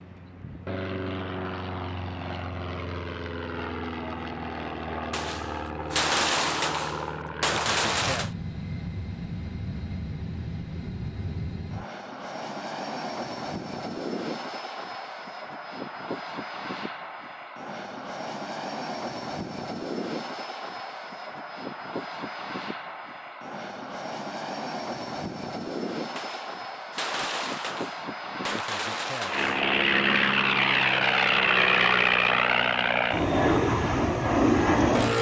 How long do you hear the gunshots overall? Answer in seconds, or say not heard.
7 s.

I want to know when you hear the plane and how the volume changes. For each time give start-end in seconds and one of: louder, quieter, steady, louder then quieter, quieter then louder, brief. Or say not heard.
0.0-35.1 louder.